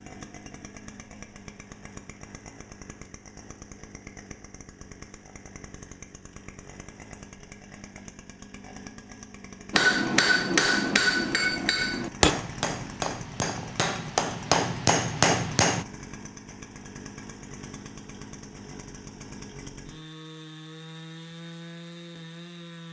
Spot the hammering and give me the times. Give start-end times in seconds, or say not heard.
9.7-15.8.